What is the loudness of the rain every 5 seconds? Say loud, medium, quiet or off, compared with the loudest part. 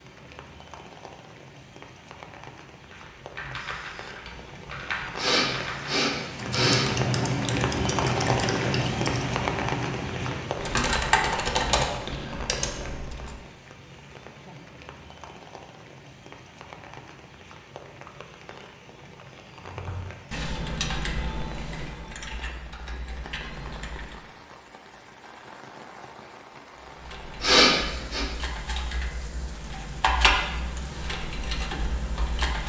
quiet, loud, medium, quiet, quiet, quiet, quiet.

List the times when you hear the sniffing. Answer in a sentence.
You can hear the sniffing from 5.2 to 6.9 s and from 27.4 to 28.2 s.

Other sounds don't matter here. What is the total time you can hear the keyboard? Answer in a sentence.
You can hear the keyboard for 21 seconds altogether.